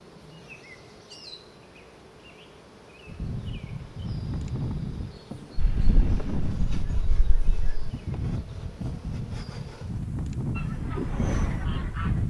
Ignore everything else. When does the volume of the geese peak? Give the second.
11 s.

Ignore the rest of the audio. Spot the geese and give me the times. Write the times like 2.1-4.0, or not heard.
5.5-7.8, 10.6-12.2.